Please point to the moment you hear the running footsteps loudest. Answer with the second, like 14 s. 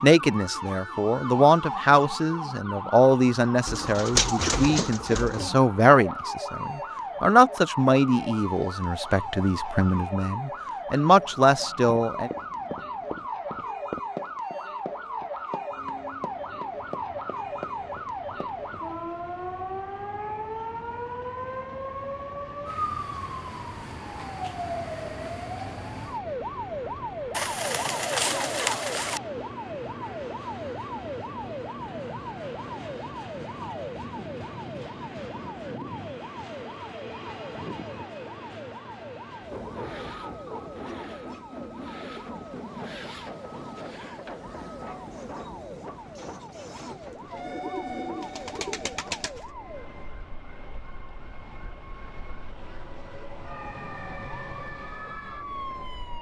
14 s.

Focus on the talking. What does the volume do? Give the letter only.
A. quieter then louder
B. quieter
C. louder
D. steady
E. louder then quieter
D.